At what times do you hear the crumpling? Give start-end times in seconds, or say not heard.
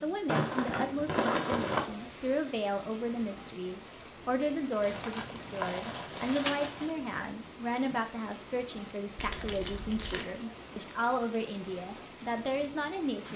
0.2-1.9, 4.8-6.9, 9.2-10.2.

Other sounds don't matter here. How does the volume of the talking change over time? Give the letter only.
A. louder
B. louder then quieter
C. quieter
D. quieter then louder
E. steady
E.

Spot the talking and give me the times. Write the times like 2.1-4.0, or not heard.
0.0-13.3.